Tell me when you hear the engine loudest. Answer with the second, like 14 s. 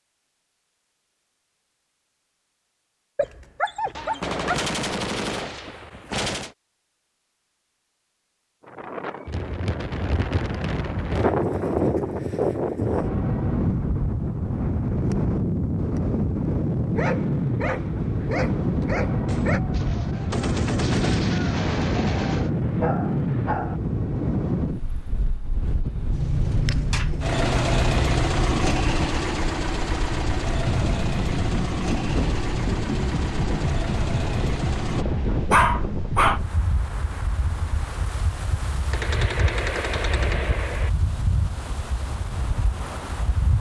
28 s.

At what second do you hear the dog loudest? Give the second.
36 s.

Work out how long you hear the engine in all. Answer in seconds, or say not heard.
9 s.